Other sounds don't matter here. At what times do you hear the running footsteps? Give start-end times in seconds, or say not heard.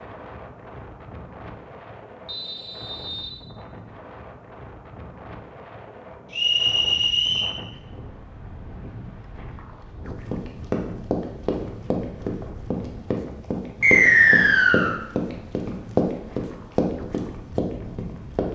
10.1-18.5.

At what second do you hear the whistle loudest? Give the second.
14 s.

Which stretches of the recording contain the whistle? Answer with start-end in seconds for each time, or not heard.
2.2-3.3, 6.3-7.5, 13.8-14.9.